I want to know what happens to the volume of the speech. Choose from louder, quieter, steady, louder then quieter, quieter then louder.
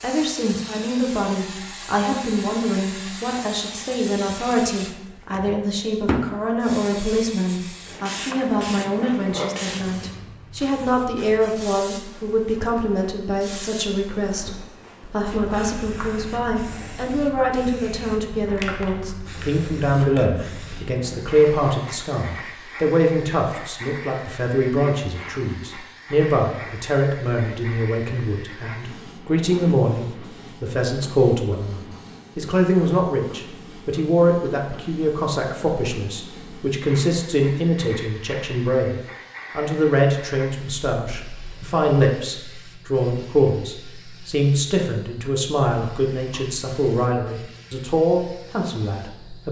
steady.